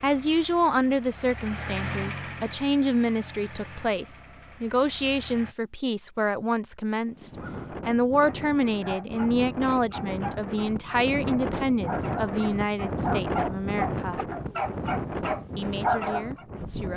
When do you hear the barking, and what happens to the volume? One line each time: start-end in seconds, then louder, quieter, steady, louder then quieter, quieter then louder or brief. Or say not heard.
7.3-16.4 louder.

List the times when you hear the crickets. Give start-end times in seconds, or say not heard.
not heard.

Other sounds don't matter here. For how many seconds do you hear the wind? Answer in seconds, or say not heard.
10 s.